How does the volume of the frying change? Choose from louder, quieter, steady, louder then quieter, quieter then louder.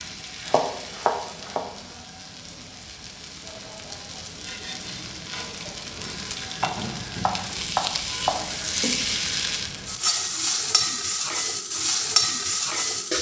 louder.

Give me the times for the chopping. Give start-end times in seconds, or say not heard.
0.5-1.7, 6.6-8.5.